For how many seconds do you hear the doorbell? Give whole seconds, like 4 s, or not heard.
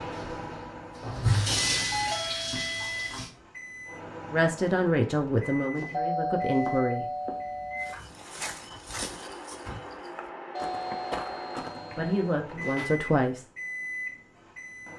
5 s.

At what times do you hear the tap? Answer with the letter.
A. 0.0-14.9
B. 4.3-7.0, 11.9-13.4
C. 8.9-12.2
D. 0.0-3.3
D.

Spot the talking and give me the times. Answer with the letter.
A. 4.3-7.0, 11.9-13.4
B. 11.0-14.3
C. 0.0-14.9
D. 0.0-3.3
A.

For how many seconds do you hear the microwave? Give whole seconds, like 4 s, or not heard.
15 s.